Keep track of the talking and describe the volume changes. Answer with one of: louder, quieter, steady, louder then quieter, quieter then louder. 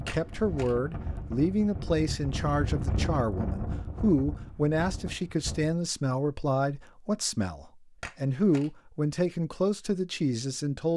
steady.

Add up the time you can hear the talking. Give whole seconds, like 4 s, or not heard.
11 s.